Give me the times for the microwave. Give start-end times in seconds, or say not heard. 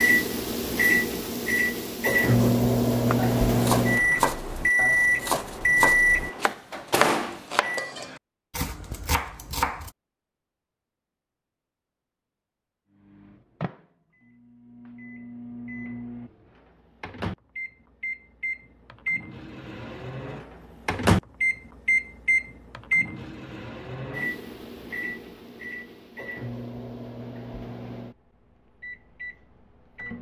0.0-7.9, 12.9-30.1.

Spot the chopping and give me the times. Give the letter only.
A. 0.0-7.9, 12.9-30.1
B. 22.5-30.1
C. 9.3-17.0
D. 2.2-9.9
D.